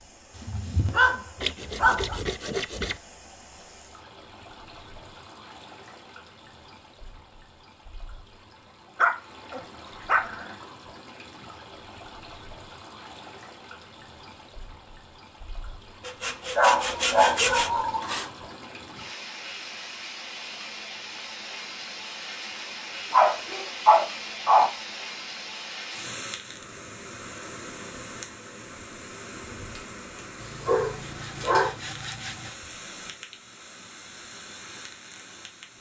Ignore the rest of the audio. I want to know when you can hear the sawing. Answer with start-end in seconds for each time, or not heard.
1.4-3.0, 16.0-18.3, 30.4-32.5.